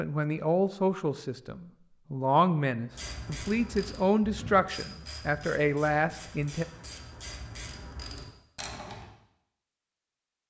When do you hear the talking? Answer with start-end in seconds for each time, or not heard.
0.0-6.7.